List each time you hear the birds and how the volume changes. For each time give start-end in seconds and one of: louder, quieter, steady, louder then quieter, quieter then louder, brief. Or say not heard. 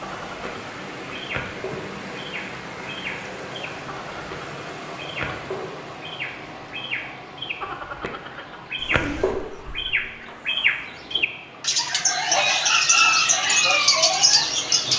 0.0-14.9 louder.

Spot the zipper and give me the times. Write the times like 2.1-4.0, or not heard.
8.8-9.9.